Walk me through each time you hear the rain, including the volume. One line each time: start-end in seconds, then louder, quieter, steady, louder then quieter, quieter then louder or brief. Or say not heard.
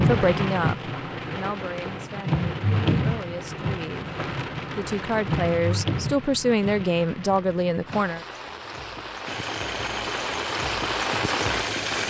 0.0-12.0 quieter then louder.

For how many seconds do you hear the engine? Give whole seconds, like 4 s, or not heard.
3 s.